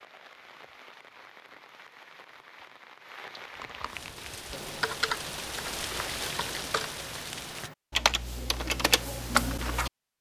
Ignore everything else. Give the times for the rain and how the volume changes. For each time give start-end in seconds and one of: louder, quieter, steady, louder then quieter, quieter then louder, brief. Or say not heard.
0.0-7.7 louder.